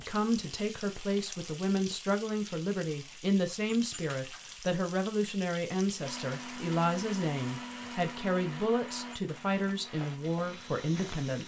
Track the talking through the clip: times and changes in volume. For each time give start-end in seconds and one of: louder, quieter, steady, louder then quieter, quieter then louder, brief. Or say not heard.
0.0-11.4 steady.